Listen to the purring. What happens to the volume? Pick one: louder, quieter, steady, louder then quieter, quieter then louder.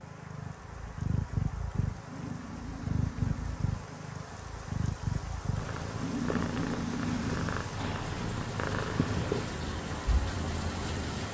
steady.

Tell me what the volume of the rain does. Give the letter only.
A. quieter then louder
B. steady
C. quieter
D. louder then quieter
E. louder
E.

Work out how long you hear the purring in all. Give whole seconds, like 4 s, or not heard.
11 s.